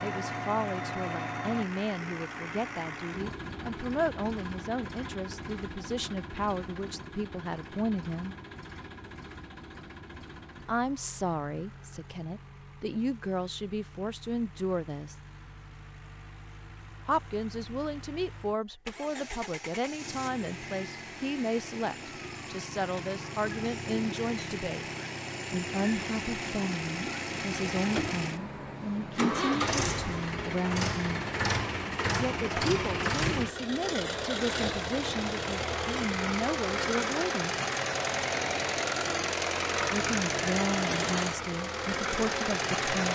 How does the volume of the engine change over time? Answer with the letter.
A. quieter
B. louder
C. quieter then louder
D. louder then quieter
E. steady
C.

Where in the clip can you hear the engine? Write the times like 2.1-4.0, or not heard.
0.0-43.1.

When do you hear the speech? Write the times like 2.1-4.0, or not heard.
0.0-8.3, 10.7-15.2, 17.1-24.9, 25.5-31.2, 32.1-37.5, 39.9-43.1.